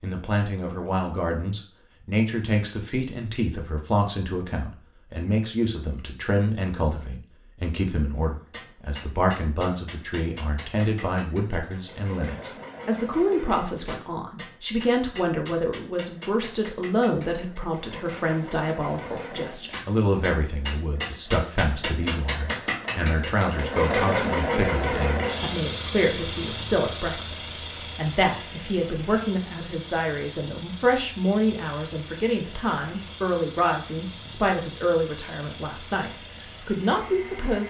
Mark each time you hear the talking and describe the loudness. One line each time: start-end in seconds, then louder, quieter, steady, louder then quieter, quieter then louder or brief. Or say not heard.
0.0-37.6 steady.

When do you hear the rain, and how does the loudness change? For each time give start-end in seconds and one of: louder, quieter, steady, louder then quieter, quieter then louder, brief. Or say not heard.
not heard.